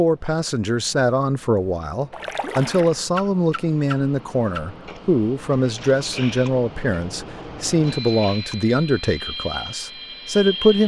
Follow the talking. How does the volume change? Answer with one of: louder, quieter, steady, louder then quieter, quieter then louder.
steady.